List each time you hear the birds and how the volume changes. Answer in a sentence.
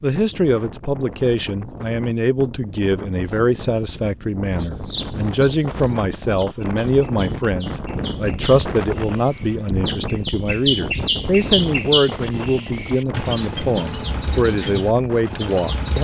The birds can be heard from 4.6 to 15.9 s, getting louder.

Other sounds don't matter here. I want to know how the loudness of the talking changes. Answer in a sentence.
The loudness of the talking stays about the same.